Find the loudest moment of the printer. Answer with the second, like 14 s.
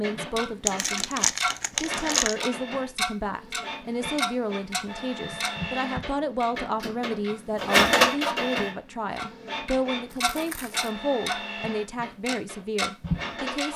8 s.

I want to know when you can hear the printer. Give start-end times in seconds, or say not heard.
0.0-13.7.